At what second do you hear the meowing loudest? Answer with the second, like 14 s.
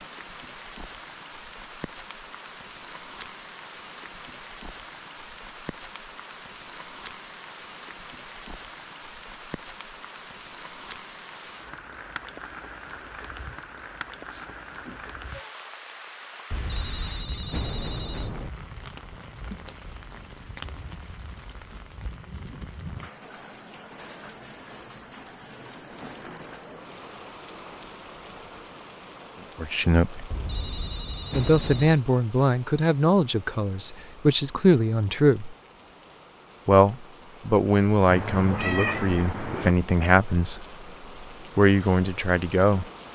39 s.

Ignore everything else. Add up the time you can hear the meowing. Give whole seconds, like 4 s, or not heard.
3 s.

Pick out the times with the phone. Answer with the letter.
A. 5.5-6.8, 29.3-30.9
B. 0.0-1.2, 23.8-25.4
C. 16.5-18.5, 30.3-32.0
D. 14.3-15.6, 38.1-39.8
C.